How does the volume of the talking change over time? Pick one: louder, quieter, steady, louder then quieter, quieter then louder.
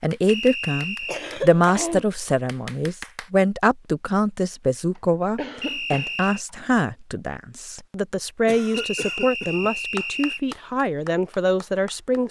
steady.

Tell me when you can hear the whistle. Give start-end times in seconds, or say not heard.
0.2-1.2, 5.6-6.5, 8.7-10.4.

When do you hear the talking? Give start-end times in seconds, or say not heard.
0.0-12.2.